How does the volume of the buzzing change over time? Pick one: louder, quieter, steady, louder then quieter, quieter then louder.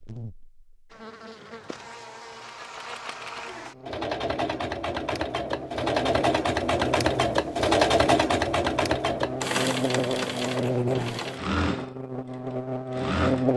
louder.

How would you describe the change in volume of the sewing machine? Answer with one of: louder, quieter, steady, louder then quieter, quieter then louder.
louder then quieter.